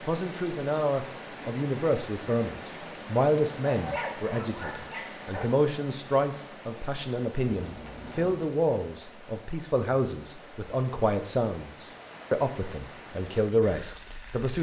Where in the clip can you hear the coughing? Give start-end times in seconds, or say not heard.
not heard.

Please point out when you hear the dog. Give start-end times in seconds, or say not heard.
3.6-5.5.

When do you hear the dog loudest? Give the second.
4 s.